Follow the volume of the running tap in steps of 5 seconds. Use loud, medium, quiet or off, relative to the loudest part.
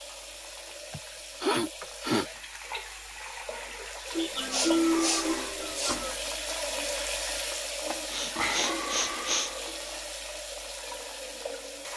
medium, loud, medium.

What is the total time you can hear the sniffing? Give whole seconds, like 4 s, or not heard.
5 s.